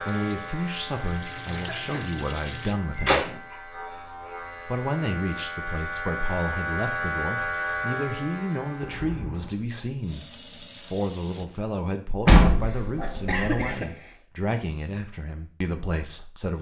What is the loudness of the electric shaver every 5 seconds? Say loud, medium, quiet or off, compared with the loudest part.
medium, loud, off, off.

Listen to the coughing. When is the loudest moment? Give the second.
13 s.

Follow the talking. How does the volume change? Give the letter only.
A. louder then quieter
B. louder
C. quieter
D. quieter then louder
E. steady
E.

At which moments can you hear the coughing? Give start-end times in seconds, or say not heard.
1.5-2.1, 8.8-9.6, 12.6-14.2.